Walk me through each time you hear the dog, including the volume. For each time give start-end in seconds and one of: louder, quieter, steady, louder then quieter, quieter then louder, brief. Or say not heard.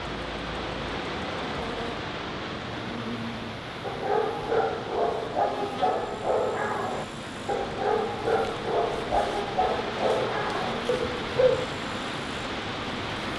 3.9-11.7 steady.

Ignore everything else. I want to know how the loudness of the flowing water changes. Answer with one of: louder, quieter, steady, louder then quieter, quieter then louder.
quieter then louder.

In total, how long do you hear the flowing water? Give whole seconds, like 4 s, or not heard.
13 s.